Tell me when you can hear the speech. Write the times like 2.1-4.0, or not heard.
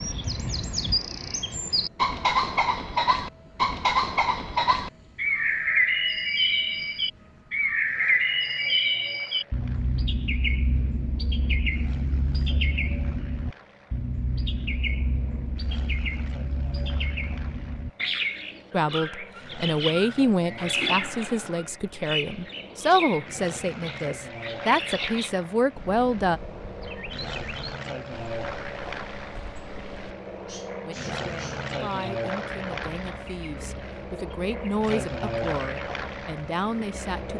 18.7-26.4, 30.9-37.3.